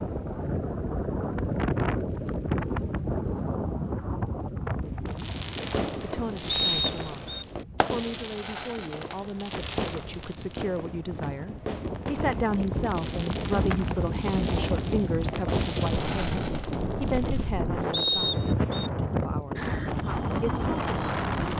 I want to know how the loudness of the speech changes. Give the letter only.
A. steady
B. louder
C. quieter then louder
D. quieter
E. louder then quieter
E.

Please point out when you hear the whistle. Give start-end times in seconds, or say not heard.
6.5-7.5, 17.9-18.9.